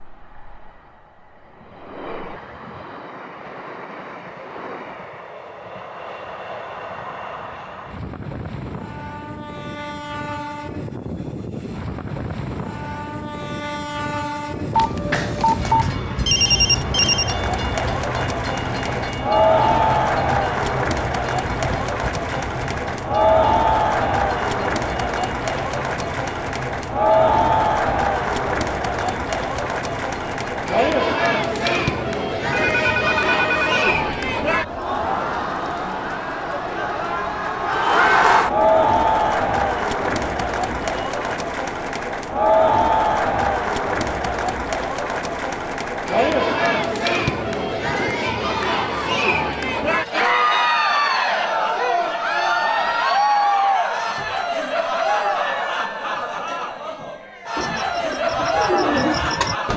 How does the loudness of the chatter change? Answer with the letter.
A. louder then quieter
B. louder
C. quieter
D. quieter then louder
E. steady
E.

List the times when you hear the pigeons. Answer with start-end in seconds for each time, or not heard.
57.5-59.7.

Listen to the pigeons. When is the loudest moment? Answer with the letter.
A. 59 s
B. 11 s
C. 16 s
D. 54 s
A.